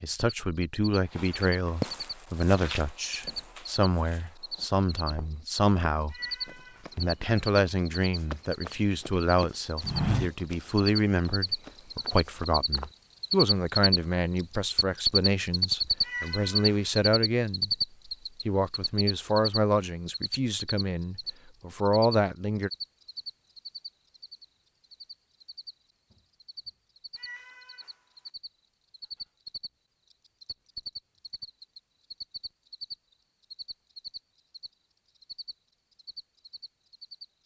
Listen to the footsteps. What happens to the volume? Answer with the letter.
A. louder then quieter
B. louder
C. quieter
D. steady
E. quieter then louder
E.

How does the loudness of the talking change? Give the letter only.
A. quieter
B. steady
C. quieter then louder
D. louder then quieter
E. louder
B.